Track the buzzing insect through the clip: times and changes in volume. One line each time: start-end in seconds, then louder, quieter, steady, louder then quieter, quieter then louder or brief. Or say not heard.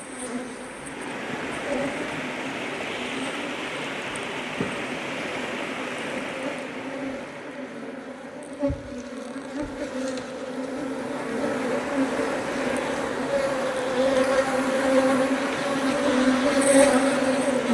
0.0-17.6 louder.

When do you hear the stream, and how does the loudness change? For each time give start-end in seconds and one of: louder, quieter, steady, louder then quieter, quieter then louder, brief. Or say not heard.
0.0-17.6 quieter then louder.